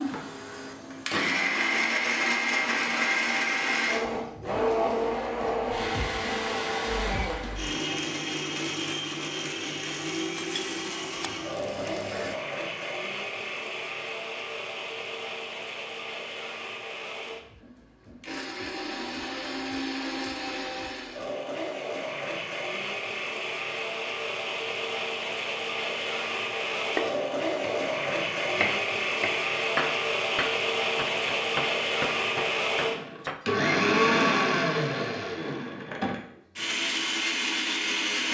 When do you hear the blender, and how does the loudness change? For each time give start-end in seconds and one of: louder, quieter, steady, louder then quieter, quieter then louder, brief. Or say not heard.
0.0-38.3 quieter then louder.